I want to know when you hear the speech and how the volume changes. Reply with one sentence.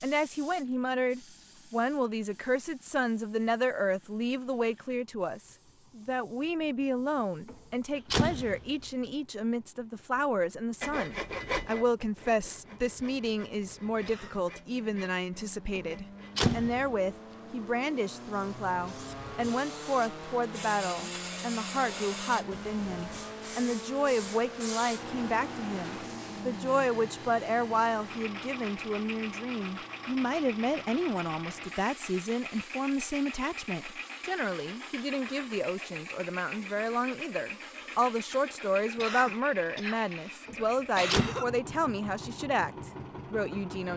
You can hear the speech from 0.0 to 43.9 s, at a steady volume.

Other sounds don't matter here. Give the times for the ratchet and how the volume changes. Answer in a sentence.
The ratchet can't be heard in this clip.